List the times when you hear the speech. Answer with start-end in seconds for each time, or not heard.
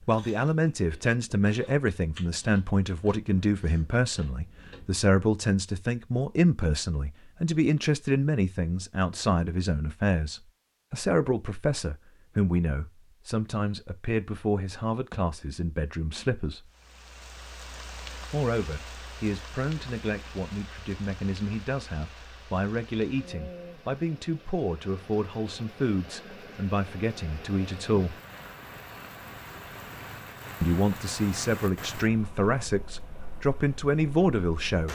0.1-16.7, 18.3-28.1, 30.6-34.9.